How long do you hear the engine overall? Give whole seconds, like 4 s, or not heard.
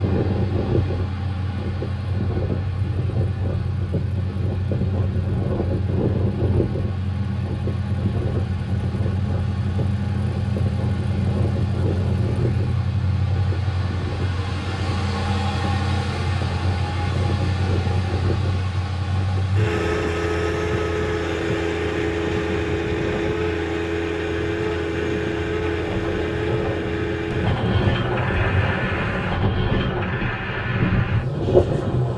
32 s.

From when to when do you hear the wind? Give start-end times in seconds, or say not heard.
0.0-32.1.